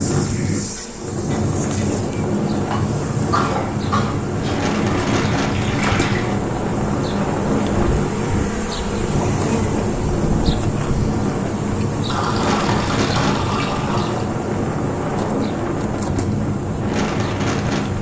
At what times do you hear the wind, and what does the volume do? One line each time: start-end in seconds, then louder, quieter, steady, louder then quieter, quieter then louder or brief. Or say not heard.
0.0-17.9 steady.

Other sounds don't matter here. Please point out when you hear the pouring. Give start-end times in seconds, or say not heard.
4.3-6.3, 12.1-14.2.